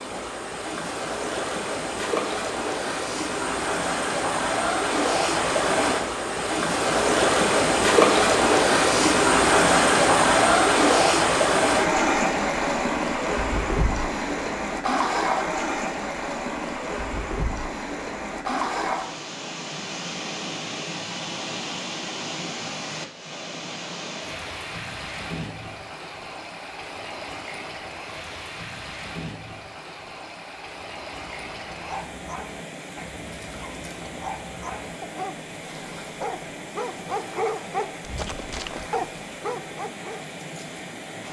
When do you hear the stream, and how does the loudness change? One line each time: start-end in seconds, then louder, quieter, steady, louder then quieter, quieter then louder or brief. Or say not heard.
0.0-41.2 quieter.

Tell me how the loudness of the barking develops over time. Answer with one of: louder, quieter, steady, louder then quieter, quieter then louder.
louder.